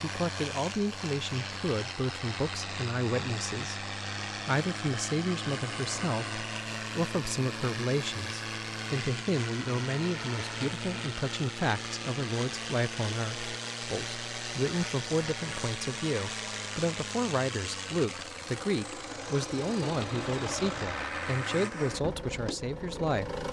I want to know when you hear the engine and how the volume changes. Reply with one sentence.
The engine can be heard from 0.0 to 23.4 s, at a steady volume.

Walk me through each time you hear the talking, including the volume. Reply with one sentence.
The talking can be heard from 0.0 to 23.4 s, at a steady volume.